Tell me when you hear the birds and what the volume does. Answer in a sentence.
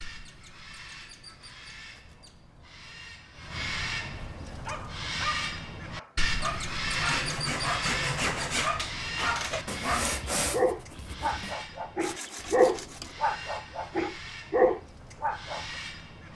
You can hear the birds from 0.0 to 16.3 s, getting louder then quieter.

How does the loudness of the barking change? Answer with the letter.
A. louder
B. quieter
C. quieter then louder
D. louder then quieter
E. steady
A.